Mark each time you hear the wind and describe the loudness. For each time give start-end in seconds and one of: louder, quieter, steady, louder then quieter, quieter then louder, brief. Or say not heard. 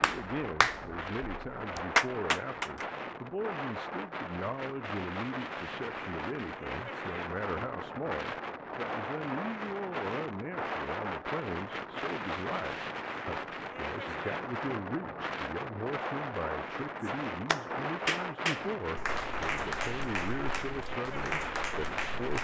0.0-22.4 steady.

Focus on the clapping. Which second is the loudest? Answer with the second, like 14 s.
2 s.